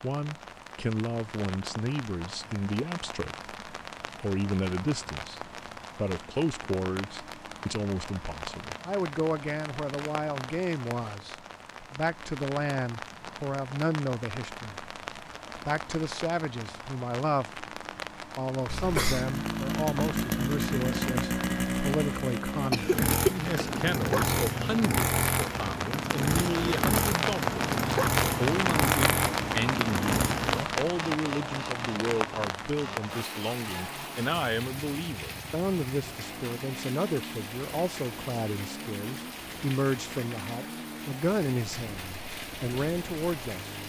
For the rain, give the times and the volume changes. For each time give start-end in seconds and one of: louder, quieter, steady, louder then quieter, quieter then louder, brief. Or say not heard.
0.0-43.8 louder then quieter.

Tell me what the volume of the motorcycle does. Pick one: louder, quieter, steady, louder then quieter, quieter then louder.
quieter.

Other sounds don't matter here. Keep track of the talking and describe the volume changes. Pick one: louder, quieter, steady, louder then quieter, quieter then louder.
steady.